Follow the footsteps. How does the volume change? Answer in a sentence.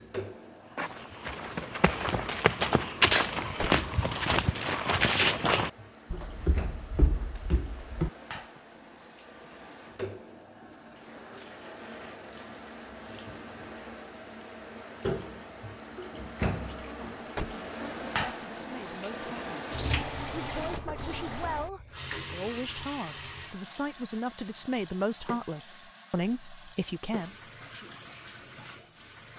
The volume of the footsteps goes up, then down.